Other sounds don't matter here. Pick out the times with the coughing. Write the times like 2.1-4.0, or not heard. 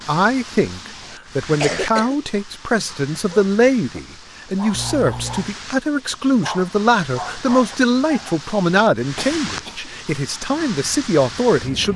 1.2-2.1, 4.7-5.5, 9.2-9.9.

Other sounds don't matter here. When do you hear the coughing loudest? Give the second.
2 s.